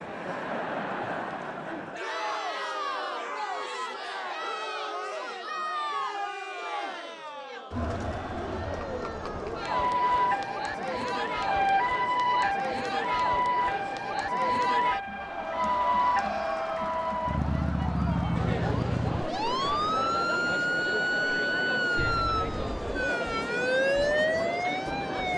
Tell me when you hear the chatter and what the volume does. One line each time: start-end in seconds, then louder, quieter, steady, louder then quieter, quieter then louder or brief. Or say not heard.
0.0-25.3 steady.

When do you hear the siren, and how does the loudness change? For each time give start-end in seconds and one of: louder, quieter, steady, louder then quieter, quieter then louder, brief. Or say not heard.
9.6-25.3 steady.